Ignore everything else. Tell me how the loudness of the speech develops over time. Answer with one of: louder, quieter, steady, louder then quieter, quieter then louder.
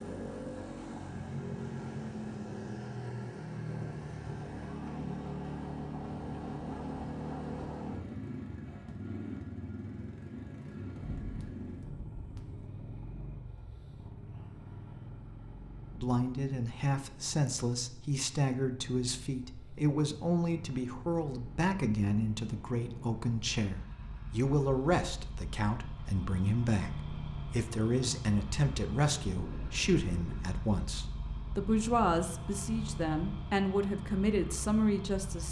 steady.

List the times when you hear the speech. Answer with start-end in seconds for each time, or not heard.
15.9-35.4.